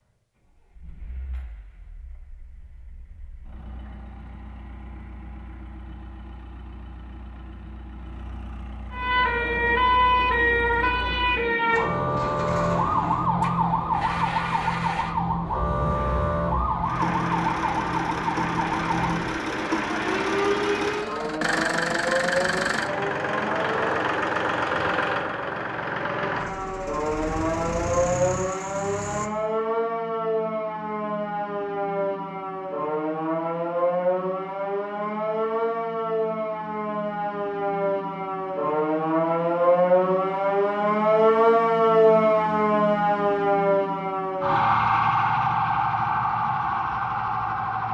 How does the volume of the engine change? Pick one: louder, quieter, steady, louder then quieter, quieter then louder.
louder.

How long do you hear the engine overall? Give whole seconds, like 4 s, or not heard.
29 s.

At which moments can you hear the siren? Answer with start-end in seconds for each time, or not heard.
8.9-23.9, 26.1-47.8.